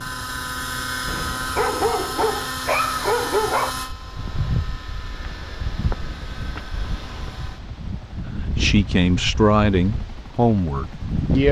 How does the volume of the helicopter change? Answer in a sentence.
The volume of the helicopter goes down.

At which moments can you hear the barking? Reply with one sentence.
The barking can be heard from 1.1 to 3.8 s.